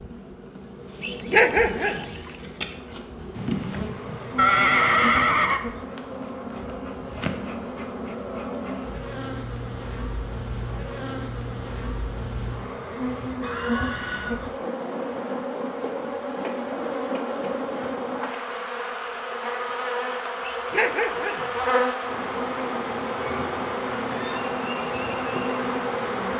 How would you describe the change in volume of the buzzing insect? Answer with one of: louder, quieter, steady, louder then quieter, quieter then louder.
louder.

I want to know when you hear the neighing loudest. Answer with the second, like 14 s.
5 s.